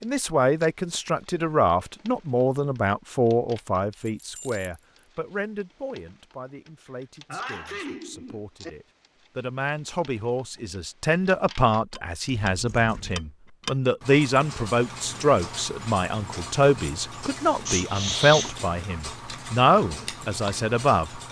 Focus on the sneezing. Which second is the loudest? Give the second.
18 s.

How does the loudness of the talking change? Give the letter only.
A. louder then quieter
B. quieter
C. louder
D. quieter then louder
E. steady
D.